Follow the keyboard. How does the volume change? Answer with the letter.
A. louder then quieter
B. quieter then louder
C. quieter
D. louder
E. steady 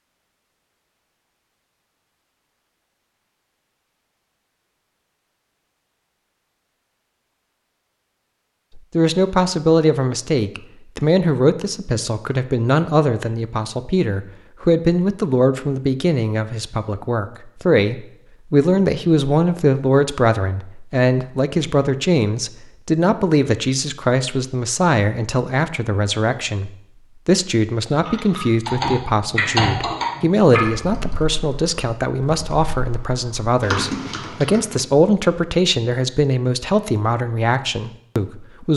B.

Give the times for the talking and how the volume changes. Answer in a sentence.
The talking can be heard from 8.8 to 38.7 s, at a steady volume.